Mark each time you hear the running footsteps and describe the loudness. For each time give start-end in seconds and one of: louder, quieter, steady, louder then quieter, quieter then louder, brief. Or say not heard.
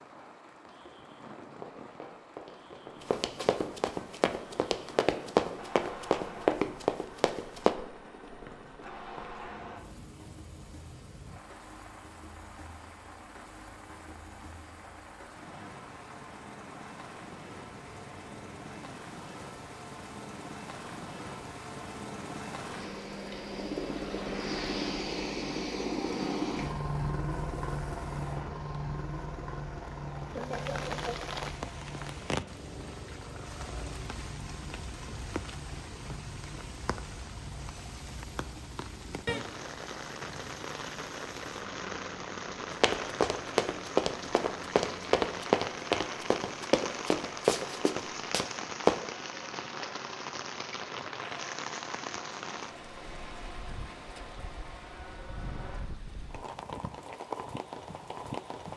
1.6-7.8 louder
42.7-49.0 quieter.